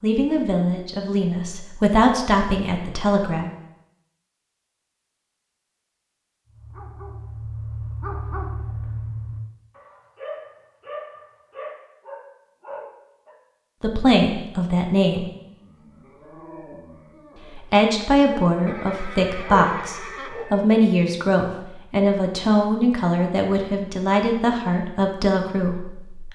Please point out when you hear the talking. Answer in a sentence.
The talking can be heard from 0.0 to 3.5 s, from 13.8 to 15.2 s and from 17.6 to 26.2 s.